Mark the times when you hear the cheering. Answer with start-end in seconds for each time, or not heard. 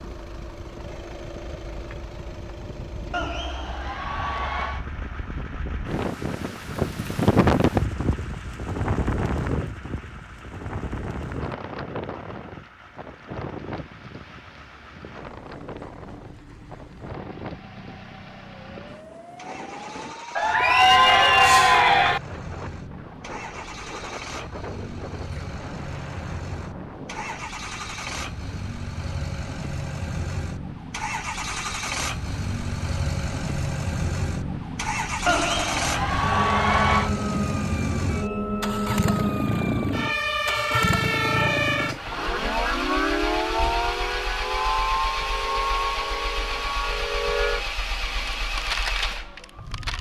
3.1-4.8, 20.4-22.2, 35.2-37.1.